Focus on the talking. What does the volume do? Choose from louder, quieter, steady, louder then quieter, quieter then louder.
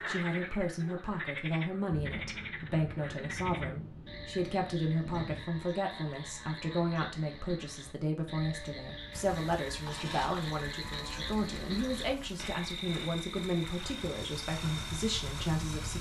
steady.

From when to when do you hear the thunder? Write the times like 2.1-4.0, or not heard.
1.9-5.5.